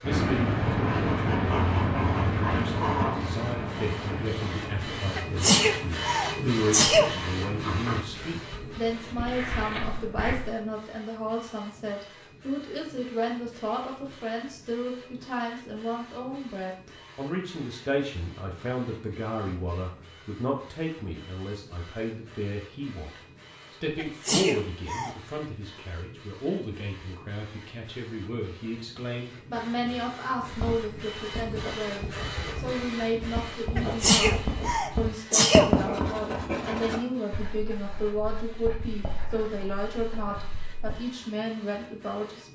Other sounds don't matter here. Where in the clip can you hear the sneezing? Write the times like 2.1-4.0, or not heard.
5.2-7.1, 23.9-25.1, 33.8-35.7.